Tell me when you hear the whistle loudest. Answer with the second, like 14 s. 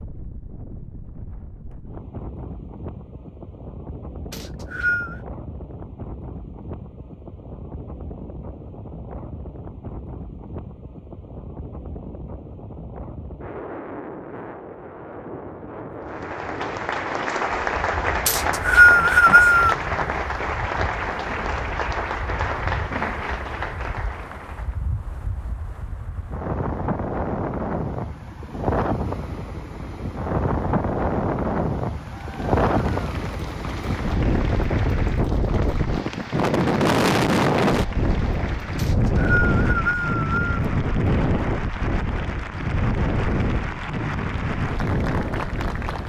19 s.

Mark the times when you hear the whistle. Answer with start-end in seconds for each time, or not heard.
4.3-5.2, 18.2-19.8, 38.8-40.6.